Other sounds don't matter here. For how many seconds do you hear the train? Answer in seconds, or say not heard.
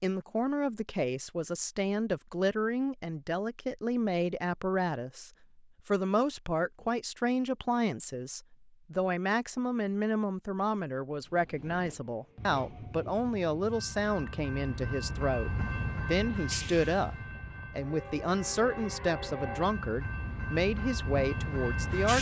11 s.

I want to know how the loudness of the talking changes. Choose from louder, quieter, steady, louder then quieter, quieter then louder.
steady.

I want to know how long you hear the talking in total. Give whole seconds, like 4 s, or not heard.
22 s.